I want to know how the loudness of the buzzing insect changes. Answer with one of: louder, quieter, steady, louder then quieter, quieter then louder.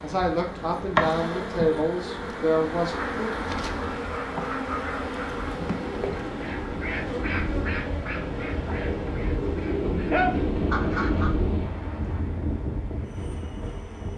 quieter.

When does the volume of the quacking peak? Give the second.
10 s.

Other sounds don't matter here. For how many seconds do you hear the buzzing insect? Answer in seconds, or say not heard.
14 s.